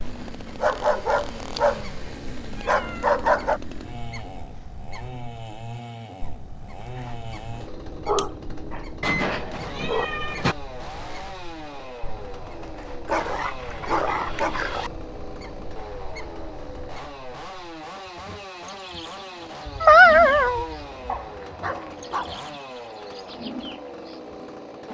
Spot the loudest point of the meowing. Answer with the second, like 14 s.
20 s.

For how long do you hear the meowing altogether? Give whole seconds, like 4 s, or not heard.
5 s.